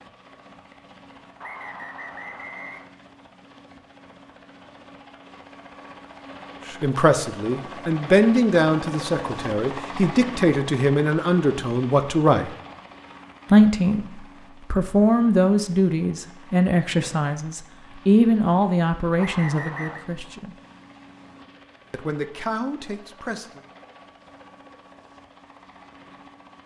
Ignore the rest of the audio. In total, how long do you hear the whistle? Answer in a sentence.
The whistle can be heard for 2 seconds in total.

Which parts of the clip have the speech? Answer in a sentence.
The speech can be heard from 6.7 to 12.6 s, from 13.5 to 20.6 s and from 21.9 to 23.6 s.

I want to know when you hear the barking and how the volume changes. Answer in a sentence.
You can't hear the barking here.